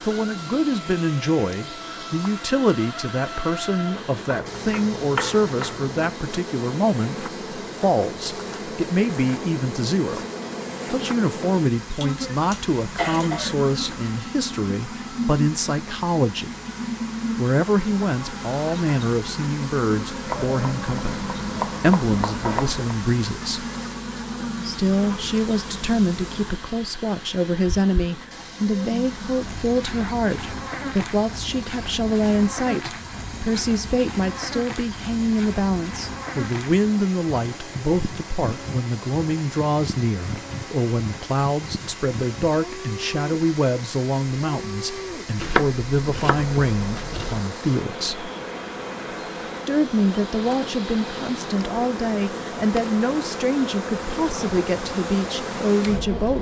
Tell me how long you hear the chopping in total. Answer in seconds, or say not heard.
6 s.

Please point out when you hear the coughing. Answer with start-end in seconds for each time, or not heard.
11.9-13.9.